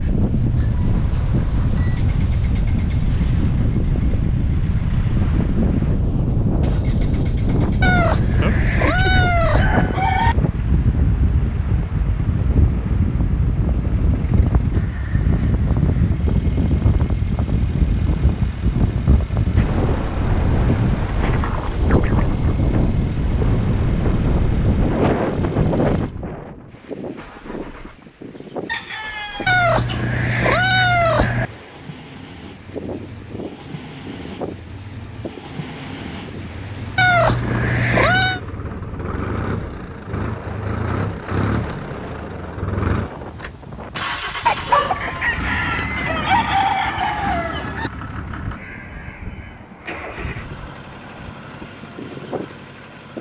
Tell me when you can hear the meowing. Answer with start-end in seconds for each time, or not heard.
7.8-9.8, 29.4-31.4, 37.0-38.4.